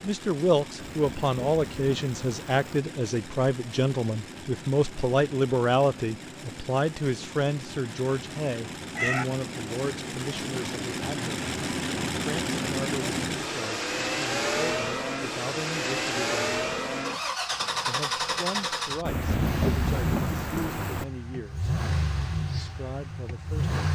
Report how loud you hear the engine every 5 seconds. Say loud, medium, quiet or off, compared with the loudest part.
quiet, medium, loud, loud, loud.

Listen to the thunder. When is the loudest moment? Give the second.
20 s.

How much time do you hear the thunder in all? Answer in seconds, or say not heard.
4 s.